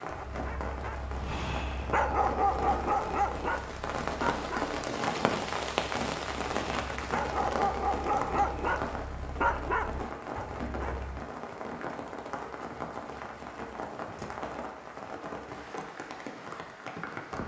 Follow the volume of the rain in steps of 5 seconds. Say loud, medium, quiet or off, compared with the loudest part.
loud, loud, medium, medium.